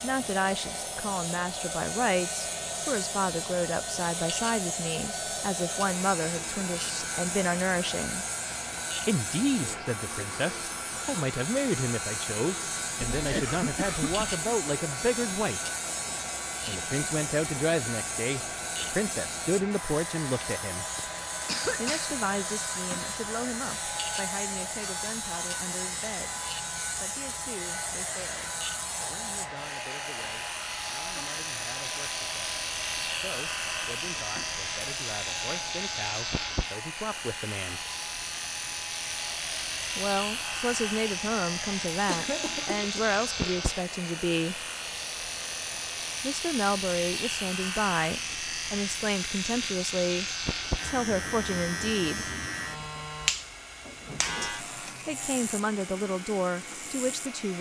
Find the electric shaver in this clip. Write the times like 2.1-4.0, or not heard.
0.0-57.5.